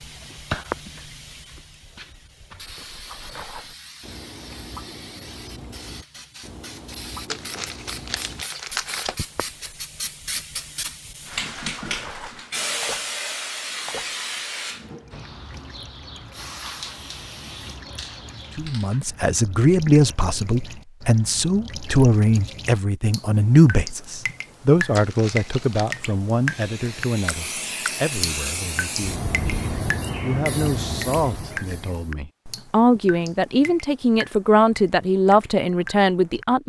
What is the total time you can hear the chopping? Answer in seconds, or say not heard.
not heard.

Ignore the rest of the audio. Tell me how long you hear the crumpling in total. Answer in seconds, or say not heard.
3 s.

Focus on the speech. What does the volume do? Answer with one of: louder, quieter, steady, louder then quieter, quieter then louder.
quieter then louder.